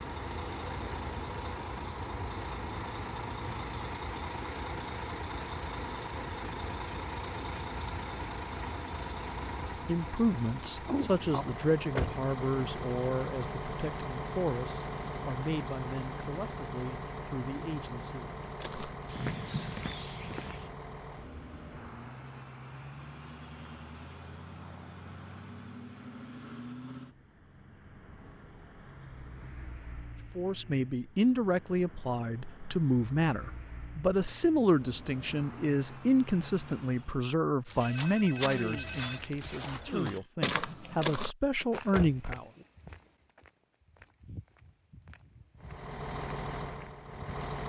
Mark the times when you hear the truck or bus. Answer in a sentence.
The truck or bus can be heard from 0.0 to 37.3 s and from 45.6 to 47.6 s.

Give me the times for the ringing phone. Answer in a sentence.
You can hear the ringing phone from 37.8 to 40.2 s.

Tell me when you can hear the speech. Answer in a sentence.
The speech can be heard from 9.8 to 18.4 s and from 30.4 to 42.5 s.